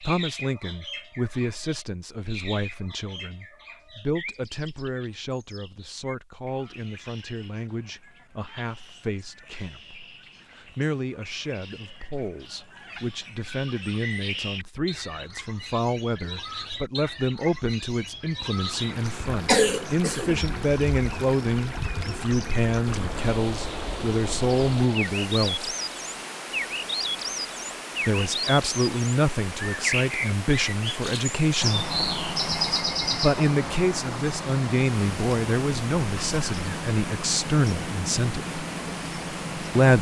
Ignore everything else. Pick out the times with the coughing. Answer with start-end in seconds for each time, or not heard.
19.4-20.6.